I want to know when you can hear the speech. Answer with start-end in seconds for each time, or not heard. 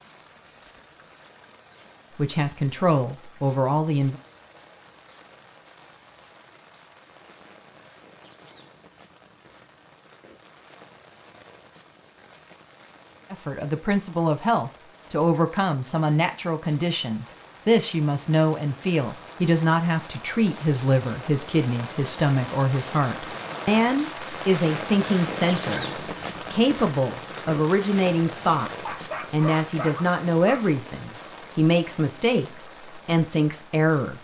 2.1-4.2, 13.3-28.7, 29.3-34.1.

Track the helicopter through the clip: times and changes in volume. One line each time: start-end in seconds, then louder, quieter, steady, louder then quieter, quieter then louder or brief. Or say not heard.
not heard.